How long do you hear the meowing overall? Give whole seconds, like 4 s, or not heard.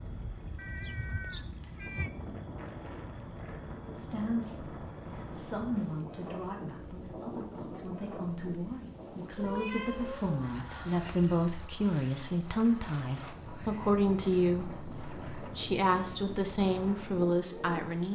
3 s.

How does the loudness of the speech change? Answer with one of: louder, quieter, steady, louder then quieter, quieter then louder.
louder.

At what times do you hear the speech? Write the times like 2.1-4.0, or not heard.
3.9-18.0.